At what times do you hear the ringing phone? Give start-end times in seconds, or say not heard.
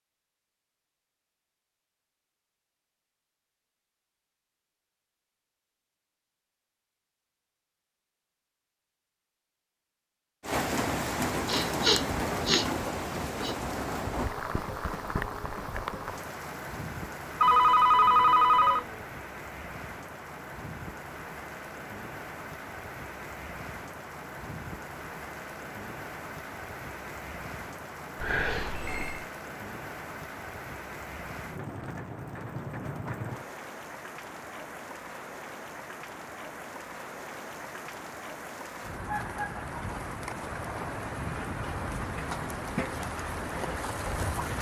17.4-18.9, 28.2-29.2.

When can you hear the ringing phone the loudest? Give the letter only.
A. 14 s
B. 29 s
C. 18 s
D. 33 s
C.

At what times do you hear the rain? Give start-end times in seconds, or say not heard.
10.4-44.5.